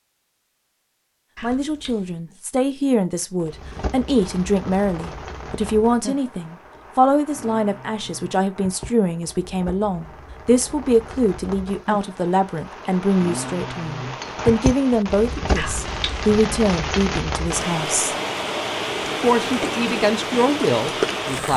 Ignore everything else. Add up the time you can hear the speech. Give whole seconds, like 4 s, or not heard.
19 s.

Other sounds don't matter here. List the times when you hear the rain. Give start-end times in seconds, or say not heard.
3.4-21.5.